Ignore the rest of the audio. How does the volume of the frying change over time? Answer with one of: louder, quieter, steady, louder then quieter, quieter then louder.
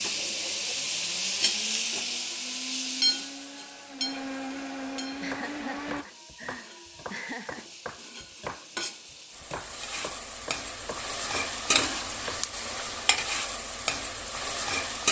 quieter then louder.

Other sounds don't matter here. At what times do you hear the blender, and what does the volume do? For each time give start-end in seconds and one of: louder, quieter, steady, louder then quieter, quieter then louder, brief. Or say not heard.
0.0-6.0 louder.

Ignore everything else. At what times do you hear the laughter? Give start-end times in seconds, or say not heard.
5.2-7.7.